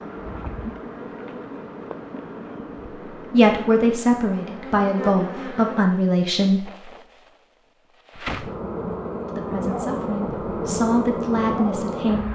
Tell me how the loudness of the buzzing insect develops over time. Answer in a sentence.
The volume of the buzzing insect goes up.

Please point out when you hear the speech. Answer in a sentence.
You can hear the speech from 3.1 to 6.7 s and from 9.3 to 12.2 s.